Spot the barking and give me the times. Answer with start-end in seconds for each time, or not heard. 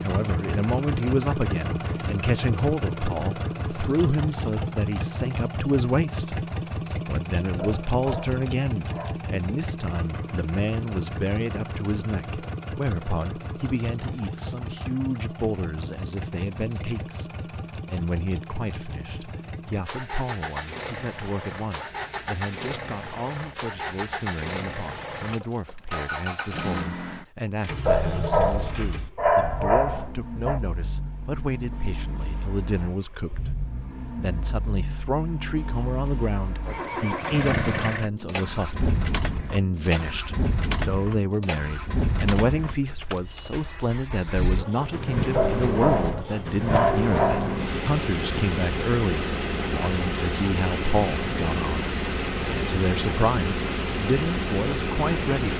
7.5-9.2, 27.9-30.6, 45.4-47.5.